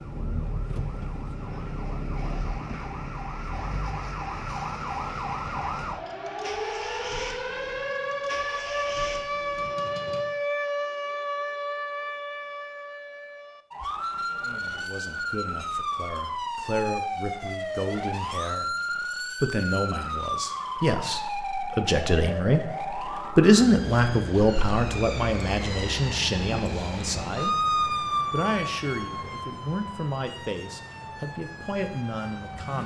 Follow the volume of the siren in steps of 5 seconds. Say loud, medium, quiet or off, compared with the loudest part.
medium, loud, loud, loud, loud, loud, medium.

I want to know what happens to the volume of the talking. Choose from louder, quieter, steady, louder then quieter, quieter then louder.
louder then quieter.